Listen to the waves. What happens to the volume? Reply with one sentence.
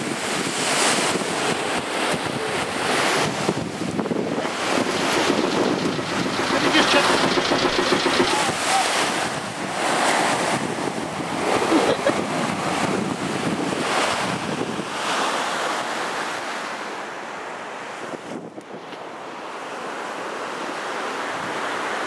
The loudness of the waves goes down.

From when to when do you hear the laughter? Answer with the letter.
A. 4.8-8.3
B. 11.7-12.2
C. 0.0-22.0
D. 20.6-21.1
B.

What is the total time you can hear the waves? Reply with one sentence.
The waves can be heard for 22 seconds in total.